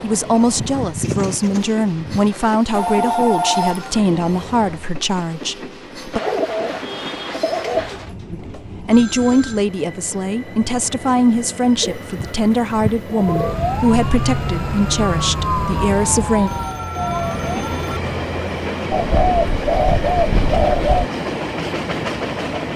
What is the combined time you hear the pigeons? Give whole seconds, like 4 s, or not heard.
8 s.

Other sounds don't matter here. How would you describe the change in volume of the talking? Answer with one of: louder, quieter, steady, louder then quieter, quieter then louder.
steady.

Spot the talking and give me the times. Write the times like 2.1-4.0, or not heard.
0.0-6.2, 8.3-16.5.